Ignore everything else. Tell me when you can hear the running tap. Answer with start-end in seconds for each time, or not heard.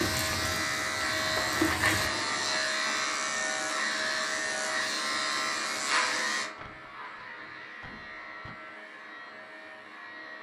0.0-2.1.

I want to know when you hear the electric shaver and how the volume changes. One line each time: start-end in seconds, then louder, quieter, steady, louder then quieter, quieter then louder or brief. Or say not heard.
0.0-10.3 quieter.